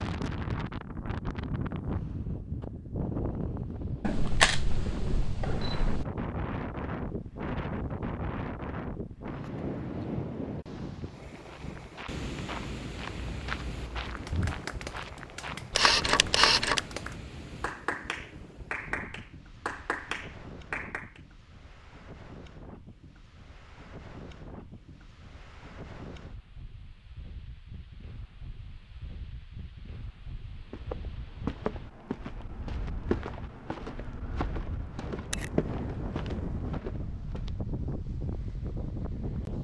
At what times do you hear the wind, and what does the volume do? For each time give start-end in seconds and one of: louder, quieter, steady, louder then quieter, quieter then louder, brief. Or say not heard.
0.0-39.5 quieter then louder.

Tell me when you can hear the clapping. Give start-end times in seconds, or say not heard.
14.1-21.2.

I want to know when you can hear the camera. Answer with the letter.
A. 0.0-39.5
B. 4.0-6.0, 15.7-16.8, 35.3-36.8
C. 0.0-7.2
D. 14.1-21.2
B.